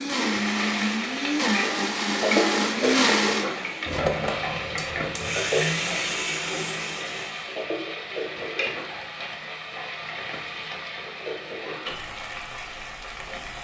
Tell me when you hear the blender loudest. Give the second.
3 s.